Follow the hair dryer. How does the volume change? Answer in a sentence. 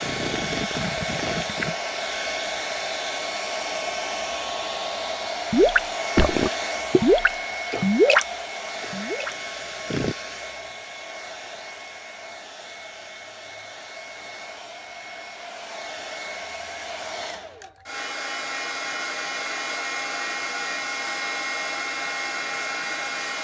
The volume of the hair dryer goes down, then up.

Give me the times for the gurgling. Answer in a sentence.
The gurgling can be heard from 0.0 to 1.8 s and from 5.5 to 10.2 s.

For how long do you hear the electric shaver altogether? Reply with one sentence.
You can't hear the electric shaver here.